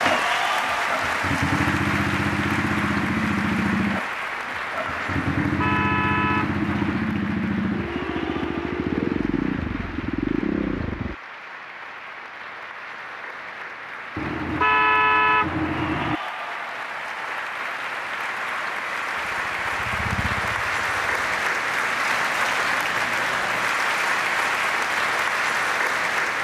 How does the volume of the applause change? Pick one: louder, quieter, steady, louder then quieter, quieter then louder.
quieter then louder.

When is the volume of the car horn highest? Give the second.
15 s.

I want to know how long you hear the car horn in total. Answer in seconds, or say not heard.
4 s.